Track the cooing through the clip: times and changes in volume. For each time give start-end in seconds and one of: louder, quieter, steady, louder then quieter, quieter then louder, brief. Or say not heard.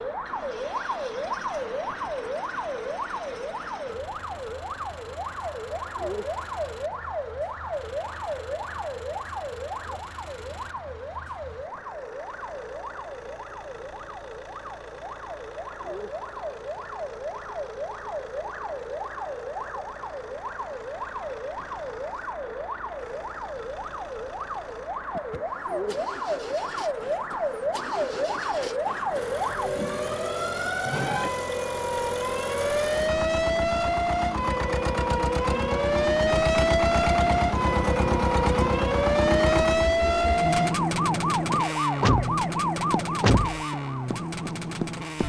not heard.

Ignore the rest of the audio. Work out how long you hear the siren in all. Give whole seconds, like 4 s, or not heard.
45 s.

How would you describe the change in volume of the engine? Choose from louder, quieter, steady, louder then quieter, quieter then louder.
louder.